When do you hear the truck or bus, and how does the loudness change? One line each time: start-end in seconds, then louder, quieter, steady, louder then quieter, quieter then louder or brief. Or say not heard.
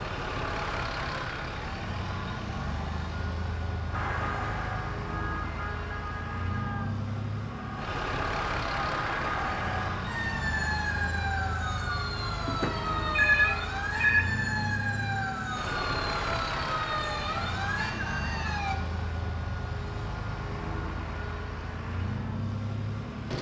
0.0-23.3 steady.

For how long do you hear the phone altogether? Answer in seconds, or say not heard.
2 s.